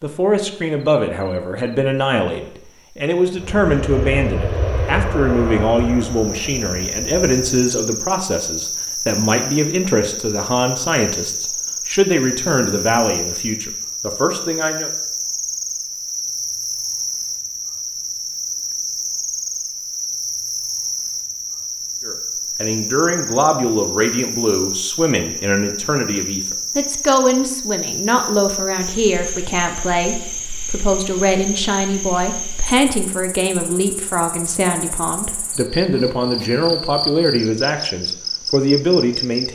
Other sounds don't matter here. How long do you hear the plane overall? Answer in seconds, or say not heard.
4 s.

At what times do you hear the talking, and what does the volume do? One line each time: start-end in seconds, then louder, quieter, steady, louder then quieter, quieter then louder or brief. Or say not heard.
0.0-14.9 steady
22.1-39.5 steady.